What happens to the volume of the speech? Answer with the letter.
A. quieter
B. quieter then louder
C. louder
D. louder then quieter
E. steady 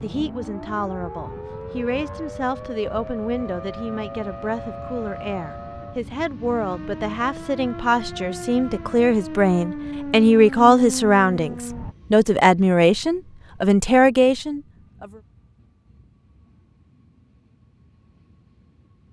C.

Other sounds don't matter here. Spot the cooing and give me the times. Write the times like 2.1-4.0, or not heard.
not heard.